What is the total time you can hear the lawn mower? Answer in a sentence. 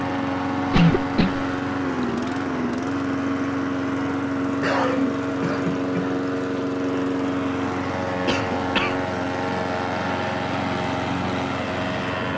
You can hear the lawn mower for 12 seconds altogether.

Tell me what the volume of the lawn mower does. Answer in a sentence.
The loudness of the lawn mower stays about the same.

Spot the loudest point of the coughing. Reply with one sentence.
The loudest moment of the coughing is at 1 second.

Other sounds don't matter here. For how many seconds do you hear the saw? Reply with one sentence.
You can't hear the saw here.